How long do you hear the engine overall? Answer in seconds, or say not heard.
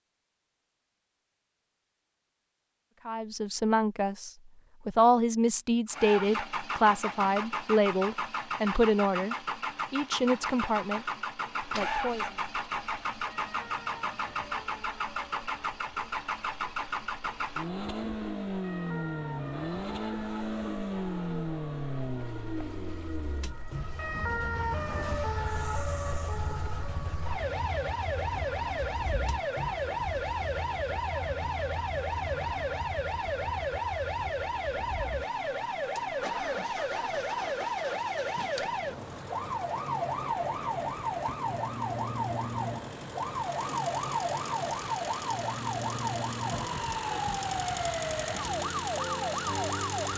44 s.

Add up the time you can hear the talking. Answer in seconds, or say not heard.
9 s.